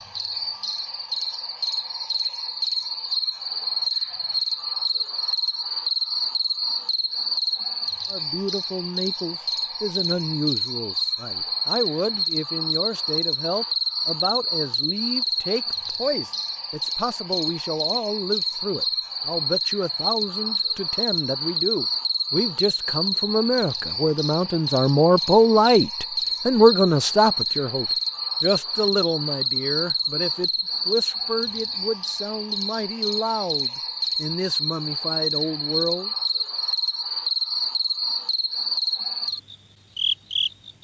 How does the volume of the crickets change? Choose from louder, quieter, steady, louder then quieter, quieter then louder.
steady.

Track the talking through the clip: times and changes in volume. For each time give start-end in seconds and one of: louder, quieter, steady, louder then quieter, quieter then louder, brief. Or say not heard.
8.1-36.1 louder then quieter.